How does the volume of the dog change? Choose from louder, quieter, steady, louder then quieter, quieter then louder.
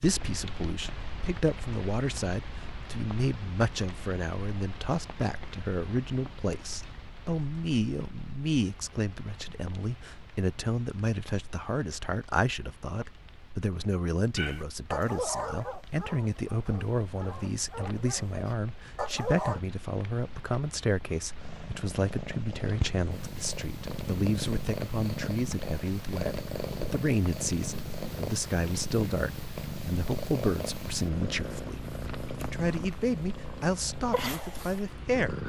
quieter then louder.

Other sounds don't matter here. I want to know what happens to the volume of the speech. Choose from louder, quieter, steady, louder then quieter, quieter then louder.
steady.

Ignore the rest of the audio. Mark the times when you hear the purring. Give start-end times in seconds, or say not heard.
21.4-35.4.